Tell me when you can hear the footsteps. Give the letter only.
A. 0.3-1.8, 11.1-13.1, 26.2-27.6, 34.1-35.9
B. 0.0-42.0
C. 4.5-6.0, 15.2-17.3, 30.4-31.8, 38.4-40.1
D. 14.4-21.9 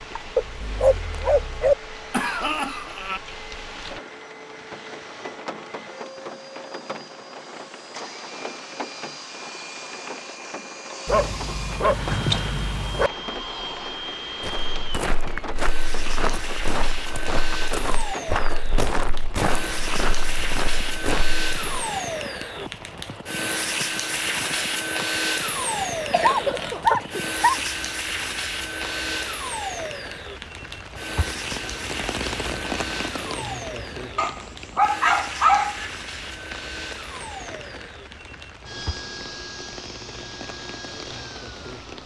D.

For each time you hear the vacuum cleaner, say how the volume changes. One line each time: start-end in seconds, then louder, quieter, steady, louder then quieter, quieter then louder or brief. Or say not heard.
0.0-42.0 louder then quieter.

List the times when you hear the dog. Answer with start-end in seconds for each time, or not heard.
0.3-1.8, 11.1-13.1, 26.2-27.6, 34.1-35.9.